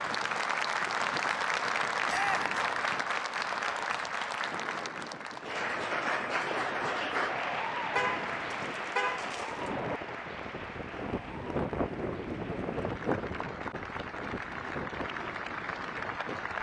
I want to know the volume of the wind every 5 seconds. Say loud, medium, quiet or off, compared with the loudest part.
medium, medium, loud, medium.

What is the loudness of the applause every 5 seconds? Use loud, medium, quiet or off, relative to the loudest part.
loud, loud, medium, medium.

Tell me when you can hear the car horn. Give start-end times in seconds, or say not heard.
8.0-9.7.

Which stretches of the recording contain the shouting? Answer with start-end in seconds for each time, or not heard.
2.0-2.5.